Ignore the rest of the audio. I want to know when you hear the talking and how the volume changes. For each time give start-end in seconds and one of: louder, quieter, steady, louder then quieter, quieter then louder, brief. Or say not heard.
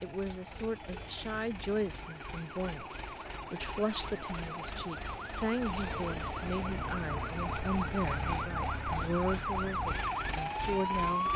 0.0-11.3 steady.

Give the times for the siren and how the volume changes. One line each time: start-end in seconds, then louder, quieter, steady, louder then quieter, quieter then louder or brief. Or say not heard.
0.0-11.3 louder.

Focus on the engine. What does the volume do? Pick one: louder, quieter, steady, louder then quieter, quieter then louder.
louder.